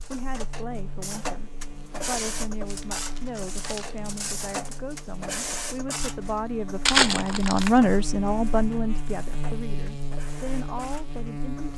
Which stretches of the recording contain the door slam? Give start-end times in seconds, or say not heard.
not heard.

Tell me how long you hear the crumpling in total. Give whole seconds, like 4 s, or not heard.
2 s.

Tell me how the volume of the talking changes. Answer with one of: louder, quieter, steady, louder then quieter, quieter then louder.
louder then quieter.